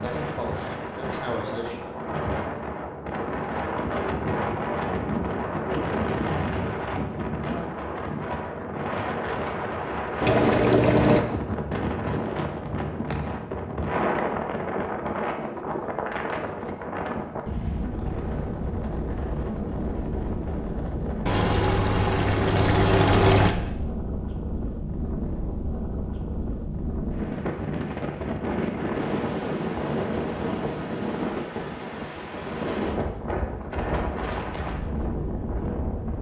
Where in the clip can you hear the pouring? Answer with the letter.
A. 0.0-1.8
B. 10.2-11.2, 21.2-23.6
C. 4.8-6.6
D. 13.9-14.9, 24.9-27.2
B.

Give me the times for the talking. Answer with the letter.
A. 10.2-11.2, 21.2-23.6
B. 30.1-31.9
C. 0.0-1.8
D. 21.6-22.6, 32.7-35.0
C.